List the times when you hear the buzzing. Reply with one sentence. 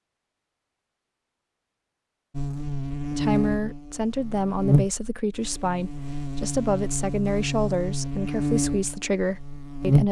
You can hear the buzzing from 2.4 to 10.0 s.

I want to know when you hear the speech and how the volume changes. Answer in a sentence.
The speech can be heard from 3.1 to 10.0 s, at a steady volume.